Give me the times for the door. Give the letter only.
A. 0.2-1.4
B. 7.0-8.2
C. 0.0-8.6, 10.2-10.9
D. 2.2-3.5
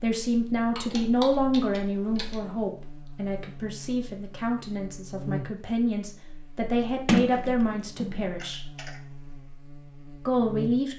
B.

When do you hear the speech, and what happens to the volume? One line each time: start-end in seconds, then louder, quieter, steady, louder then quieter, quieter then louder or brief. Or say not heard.
0.0-8.6 quieter then louder
10.2-10.9 brief.